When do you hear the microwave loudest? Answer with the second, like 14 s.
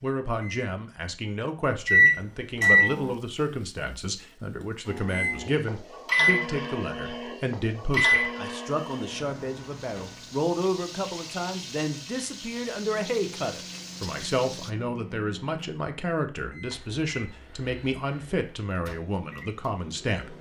2 s.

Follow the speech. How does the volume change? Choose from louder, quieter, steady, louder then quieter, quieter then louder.
steady.